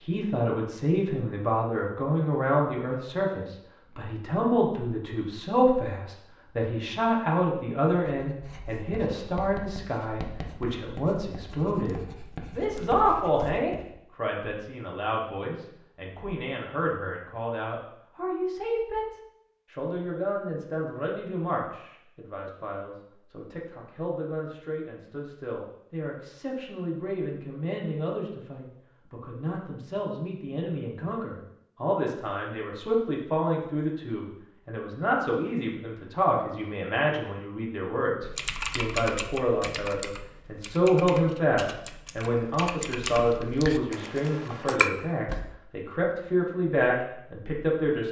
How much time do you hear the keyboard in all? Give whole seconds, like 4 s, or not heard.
7 s.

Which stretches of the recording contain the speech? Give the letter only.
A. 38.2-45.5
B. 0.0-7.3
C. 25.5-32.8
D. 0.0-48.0
D.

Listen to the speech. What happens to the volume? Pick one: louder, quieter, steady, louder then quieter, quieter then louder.
quieter then louder.